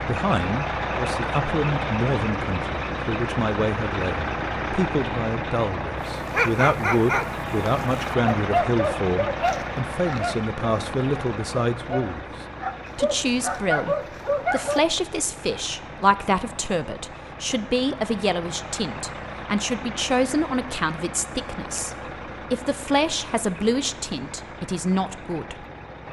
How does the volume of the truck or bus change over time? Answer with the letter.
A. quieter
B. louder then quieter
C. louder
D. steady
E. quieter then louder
A.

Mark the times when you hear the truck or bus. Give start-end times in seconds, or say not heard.
0.0-26.0.